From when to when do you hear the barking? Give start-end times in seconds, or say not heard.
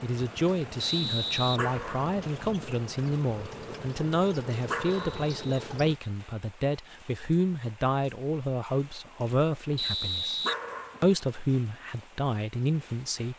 1.6-2.1, 4.7-5.2, 10.4-11.1.